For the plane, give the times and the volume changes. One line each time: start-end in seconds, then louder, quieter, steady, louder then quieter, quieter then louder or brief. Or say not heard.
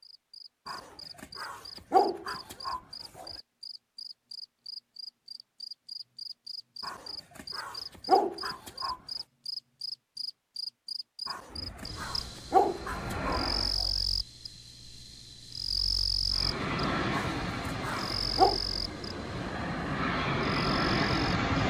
11.5-13.8 brief
16.3-21.6 quieter then louder.